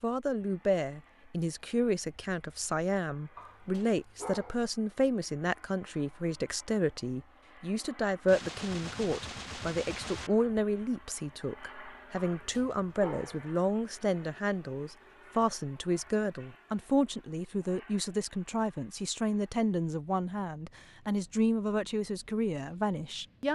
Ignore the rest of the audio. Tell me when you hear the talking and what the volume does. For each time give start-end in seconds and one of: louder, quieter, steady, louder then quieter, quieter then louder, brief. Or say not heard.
0.0-23.5 steady.